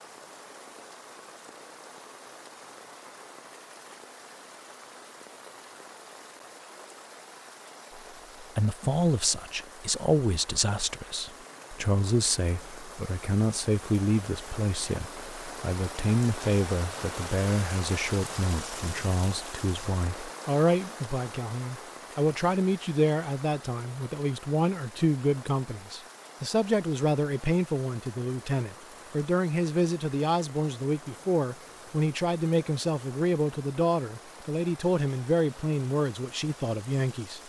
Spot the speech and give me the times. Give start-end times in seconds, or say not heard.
8.4-37.4.